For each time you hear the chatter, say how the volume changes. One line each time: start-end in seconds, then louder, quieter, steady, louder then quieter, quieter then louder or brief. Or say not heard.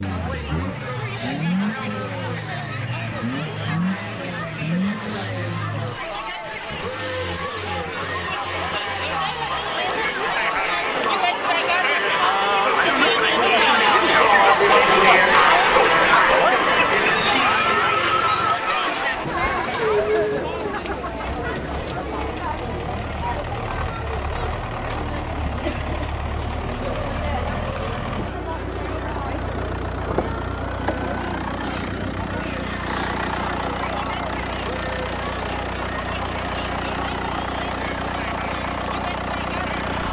0.0-40.0 louder then quieter.